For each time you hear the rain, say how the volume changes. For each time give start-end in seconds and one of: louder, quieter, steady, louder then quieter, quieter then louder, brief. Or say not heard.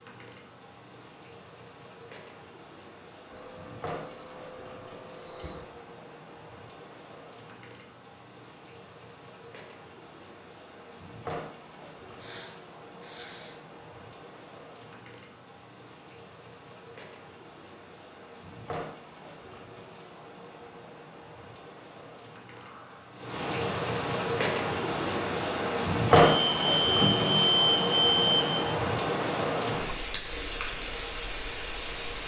0.0-32.2 louder.